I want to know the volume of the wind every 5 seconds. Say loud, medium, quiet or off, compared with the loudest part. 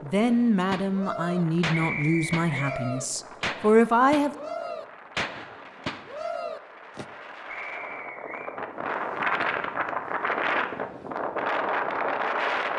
quiet, medium, loud.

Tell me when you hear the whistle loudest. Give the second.
2 s.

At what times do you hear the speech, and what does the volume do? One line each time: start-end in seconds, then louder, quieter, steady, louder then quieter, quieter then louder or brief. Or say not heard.
0.0-4.3 quieter then louder.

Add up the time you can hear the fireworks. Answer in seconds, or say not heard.
7 s.